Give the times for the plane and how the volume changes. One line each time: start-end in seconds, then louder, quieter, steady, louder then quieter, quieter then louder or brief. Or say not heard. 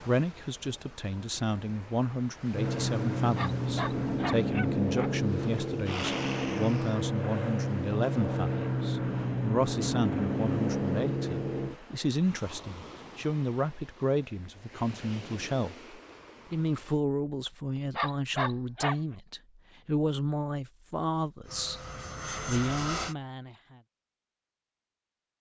2.5-11.8 steady
21.4-23.1 brief.